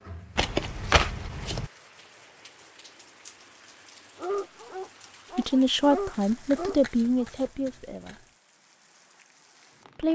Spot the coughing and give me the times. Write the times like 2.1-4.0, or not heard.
not heard.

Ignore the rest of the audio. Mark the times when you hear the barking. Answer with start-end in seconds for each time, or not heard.
4.2-7.2.